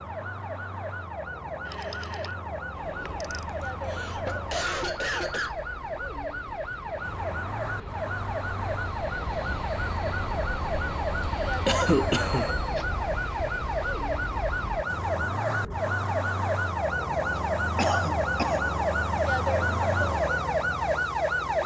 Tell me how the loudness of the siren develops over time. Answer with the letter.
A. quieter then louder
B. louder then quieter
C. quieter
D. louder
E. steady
D.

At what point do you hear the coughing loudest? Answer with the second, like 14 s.
12 s.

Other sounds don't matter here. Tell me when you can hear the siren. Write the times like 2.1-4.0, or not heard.
0.0-21.6.